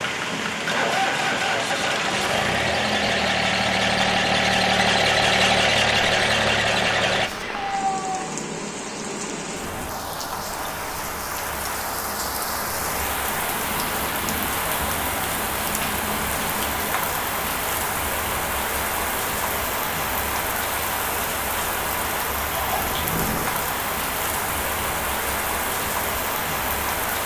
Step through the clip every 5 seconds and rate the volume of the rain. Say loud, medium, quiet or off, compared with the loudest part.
loud, medium, loud, loud, loud, loud.